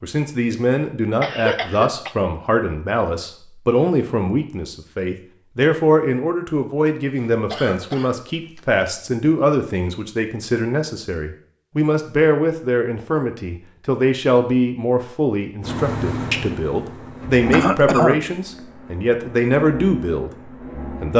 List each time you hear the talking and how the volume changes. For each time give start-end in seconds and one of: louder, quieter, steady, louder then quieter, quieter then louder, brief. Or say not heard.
0.0-21.1 steady.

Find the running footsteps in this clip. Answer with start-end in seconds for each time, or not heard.
not heard.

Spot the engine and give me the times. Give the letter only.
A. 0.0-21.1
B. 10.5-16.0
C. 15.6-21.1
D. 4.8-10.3
C.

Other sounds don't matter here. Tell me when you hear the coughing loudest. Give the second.
18 s.